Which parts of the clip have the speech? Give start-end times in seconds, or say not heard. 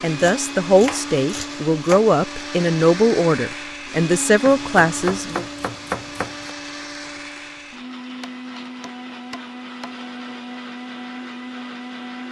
0.0-5.5.